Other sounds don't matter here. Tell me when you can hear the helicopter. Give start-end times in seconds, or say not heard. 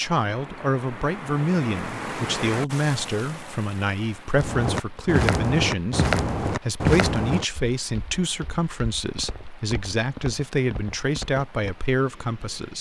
not heard.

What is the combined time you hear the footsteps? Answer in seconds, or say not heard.
7 s.